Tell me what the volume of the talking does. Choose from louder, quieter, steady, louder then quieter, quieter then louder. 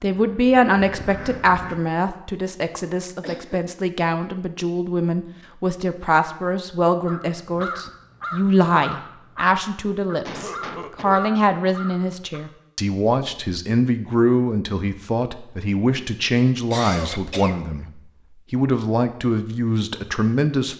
steady.